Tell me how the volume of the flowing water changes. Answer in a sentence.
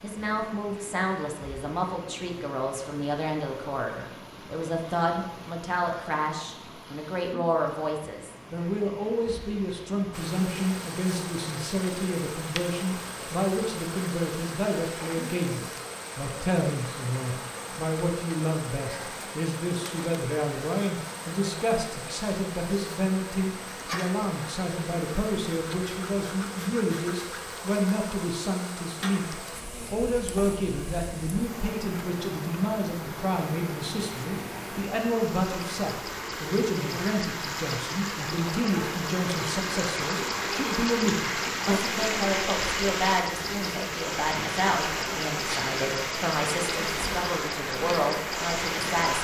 The loudness of the flowing water goes up.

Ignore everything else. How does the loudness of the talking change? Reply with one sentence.
The loudness of the talking stays about the same.